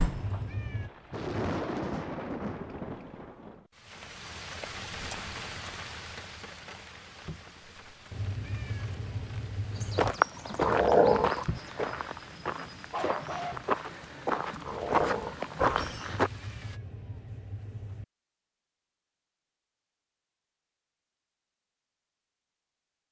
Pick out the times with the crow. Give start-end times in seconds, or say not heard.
not heard.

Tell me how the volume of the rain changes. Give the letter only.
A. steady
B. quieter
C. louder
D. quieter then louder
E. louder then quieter
B.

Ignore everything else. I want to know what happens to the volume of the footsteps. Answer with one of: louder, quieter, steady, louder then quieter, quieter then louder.
quieter then louder.